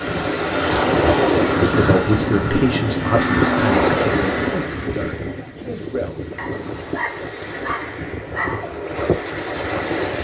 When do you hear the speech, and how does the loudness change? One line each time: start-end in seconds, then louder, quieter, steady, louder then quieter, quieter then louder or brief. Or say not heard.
1.8-6.2 quieter.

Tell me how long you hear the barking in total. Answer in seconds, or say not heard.
2 s.